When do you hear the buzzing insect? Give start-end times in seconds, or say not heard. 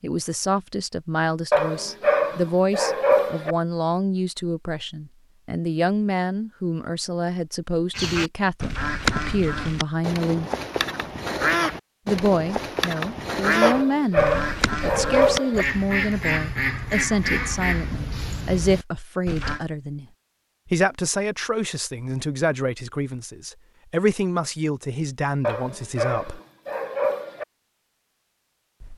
not heard.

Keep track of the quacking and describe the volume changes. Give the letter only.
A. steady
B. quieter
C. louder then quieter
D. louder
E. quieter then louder
A.